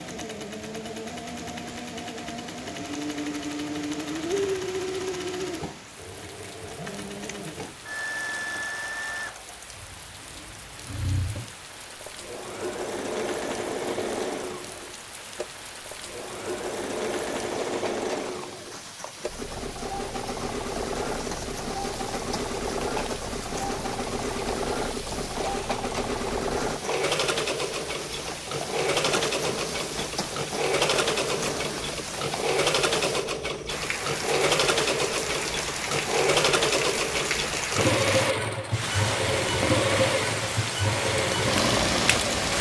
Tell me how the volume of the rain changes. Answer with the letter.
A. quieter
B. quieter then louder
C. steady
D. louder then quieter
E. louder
E.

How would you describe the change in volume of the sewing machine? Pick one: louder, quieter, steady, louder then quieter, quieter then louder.
louder.